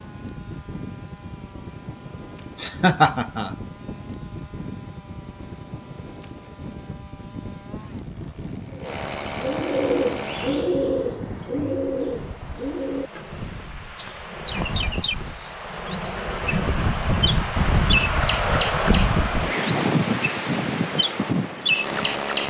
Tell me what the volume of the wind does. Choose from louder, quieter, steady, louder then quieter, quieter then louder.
louder.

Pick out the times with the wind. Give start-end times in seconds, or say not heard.
0.0-22.4.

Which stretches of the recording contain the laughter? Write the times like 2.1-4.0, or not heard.
2.6-3.5.